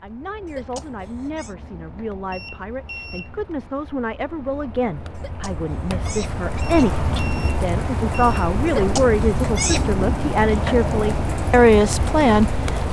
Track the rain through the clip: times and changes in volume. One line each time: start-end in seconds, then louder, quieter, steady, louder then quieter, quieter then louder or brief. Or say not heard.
0.0-12.8 louder.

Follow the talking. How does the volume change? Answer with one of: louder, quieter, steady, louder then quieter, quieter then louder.
louder.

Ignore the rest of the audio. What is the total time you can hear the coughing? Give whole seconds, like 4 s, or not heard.
4 s.